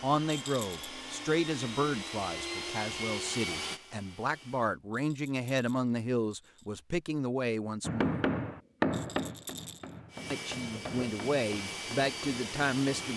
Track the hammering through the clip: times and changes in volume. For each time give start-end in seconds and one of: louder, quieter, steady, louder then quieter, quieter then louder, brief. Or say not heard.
7.8-13.1 quieter.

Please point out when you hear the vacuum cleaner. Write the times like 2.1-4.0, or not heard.
0.0-4.8, 10.1-13.1.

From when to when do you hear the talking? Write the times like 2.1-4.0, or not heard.
0.0-8.1, 10.3-13.1.